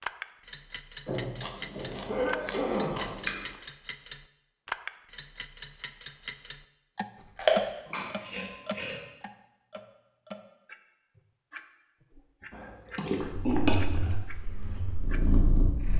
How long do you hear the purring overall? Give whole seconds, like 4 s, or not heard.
3 s.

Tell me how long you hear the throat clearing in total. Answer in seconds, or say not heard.
3 s.